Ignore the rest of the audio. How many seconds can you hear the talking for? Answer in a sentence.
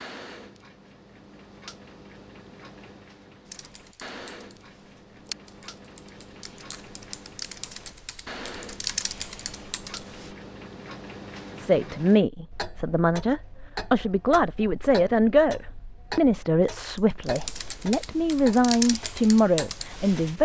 The talking can be heard for 9 seconds in total.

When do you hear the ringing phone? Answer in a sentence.
You can't hear the ringing phone here.